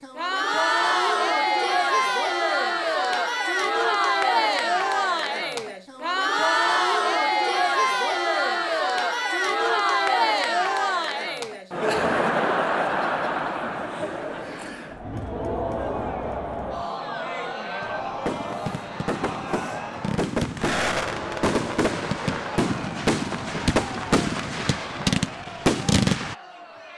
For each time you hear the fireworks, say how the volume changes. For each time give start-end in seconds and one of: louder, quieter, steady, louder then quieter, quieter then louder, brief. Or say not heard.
17.8-26.4 louder.